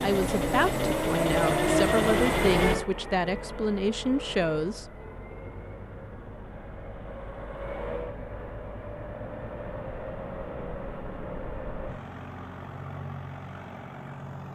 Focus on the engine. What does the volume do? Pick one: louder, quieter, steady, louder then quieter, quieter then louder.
quieter.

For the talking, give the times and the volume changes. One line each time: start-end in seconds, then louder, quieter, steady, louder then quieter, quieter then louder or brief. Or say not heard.
0.0-5.0 steady.